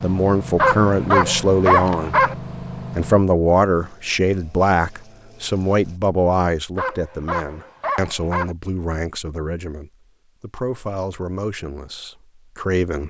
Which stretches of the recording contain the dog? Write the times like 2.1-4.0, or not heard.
0.6-2.4, 6.8-8.6.